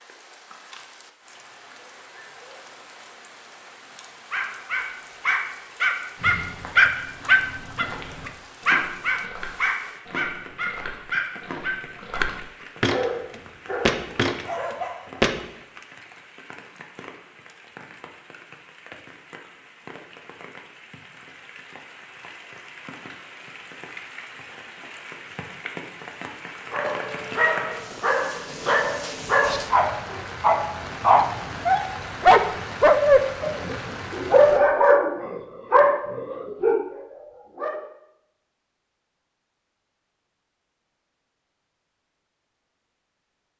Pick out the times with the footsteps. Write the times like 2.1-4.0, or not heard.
6.2-15.4.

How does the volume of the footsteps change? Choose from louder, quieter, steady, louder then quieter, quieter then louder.
louder.